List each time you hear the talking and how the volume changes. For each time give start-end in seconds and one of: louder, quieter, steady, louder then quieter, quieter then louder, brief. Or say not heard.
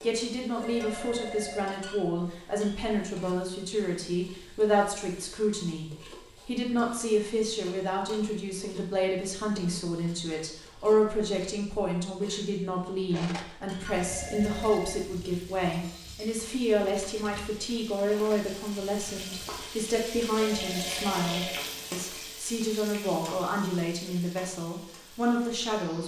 0.0-26.0 steady.